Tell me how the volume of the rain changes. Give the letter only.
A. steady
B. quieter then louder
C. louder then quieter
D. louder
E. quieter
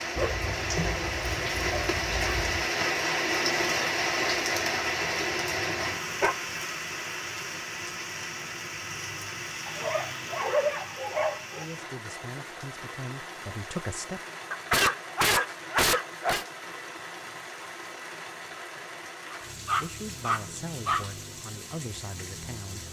E.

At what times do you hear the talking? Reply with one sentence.
The talking can be heard from 11.6 to 14.2 s and from 19.8 to 22.8 s.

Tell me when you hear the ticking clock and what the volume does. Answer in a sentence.
The ticking clock can't be heard in this clip.